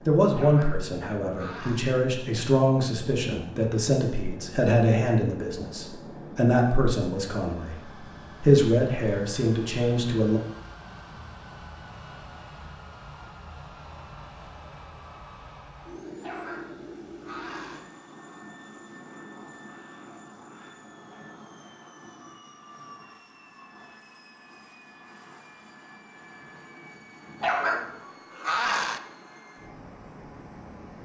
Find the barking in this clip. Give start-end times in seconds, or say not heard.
0.3-1.9, 16.2-17.8, 27.4-29.0.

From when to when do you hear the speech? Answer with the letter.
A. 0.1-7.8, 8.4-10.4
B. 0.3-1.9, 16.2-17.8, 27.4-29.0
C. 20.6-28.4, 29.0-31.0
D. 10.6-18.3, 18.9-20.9
A.